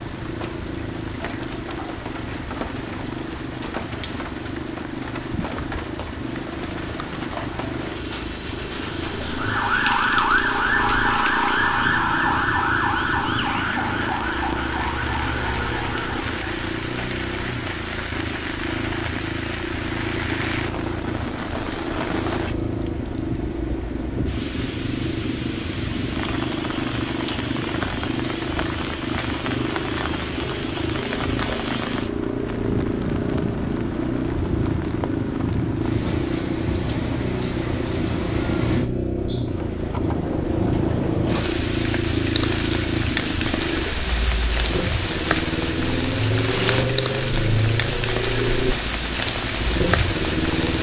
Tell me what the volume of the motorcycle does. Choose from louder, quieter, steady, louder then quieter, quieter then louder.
louder.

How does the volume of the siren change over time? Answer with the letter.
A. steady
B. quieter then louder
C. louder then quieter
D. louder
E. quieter
E.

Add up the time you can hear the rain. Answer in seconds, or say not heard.
51 s.